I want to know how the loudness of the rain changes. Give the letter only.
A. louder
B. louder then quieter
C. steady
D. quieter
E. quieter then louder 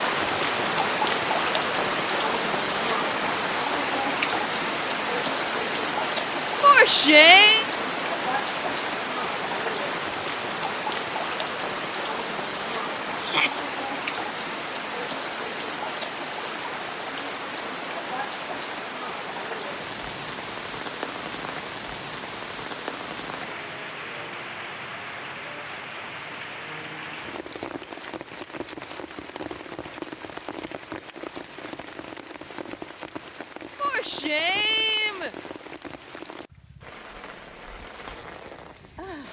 D.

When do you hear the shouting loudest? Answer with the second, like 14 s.
7 s.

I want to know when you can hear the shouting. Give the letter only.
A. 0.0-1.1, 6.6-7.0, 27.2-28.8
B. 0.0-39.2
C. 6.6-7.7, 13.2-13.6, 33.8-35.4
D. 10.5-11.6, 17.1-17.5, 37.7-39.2
C.